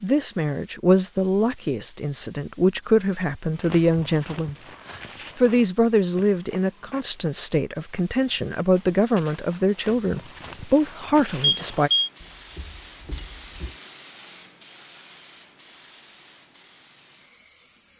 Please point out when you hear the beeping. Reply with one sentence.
The beeping can be heard from 11.4 to 12.1 s.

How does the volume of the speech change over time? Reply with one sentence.
The volume of the speech stays about the same.